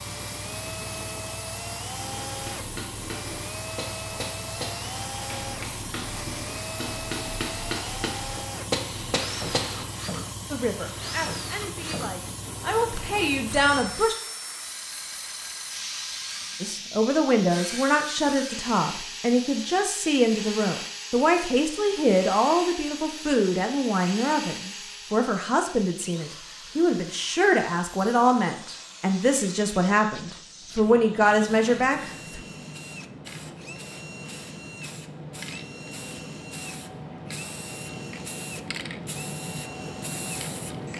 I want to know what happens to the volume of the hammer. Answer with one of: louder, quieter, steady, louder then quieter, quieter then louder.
louder.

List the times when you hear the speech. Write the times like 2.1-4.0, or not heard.
10.5-14.2, 16.6-32.4.